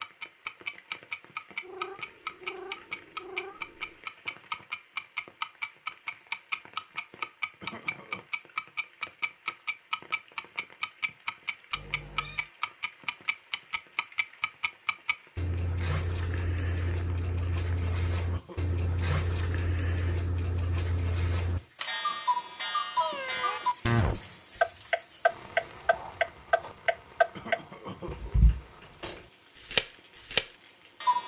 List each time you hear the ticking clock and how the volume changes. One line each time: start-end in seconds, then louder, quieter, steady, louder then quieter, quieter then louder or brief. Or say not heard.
0.0-31.2 quieter then louder.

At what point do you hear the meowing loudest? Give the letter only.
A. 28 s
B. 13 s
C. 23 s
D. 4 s
C.